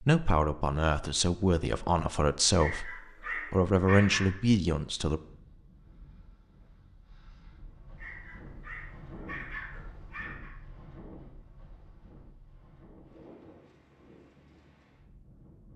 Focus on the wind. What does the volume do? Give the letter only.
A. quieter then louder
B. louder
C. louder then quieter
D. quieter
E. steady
C.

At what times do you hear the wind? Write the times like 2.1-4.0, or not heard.
5.1-15.7.